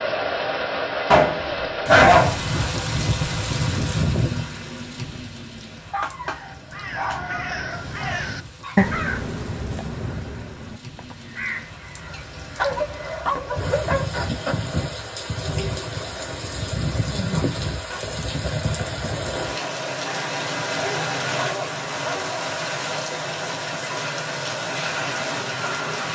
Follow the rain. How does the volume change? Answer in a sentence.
The loudness of the rain goes down, then up.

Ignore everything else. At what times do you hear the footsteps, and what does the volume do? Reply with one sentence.
You can't hear the footsteps here.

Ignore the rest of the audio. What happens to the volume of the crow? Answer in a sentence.
The loudness of the crow goes up, then down.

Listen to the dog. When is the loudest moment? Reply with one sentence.
The loudest moment of the dog is at 2 seconds.